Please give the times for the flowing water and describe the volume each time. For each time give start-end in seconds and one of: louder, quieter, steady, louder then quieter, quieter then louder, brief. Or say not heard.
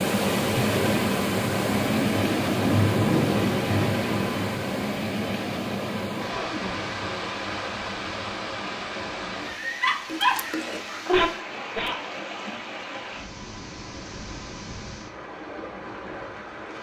0.0-16.7 quieter.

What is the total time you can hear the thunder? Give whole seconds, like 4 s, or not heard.
4 s.